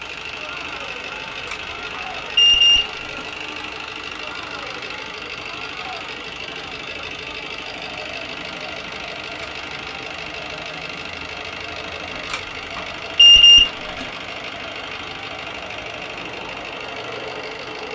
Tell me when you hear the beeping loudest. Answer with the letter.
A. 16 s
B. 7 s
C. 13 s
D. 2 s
C.